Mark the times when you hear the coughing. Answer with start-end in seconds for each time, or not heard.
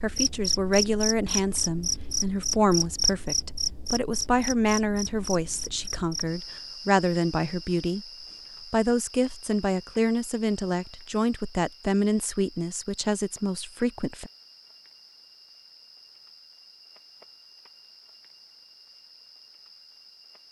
not heard.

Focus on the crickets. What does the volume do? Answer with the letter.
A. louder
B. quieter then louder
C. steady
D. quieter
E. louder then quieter
D.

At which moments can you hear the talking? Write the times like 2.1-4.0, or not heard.
0.0-8.1, 8.7-14.3.